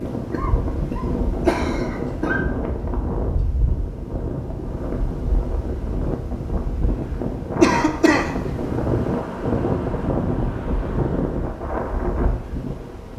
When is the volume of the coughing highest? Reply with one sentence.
The volume of the coughing peaks at 8 seconds.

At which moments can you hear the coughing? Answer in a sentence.
The coughing can be heard from 0.3 to 2.4 s and from 7.6 to 8.3 s.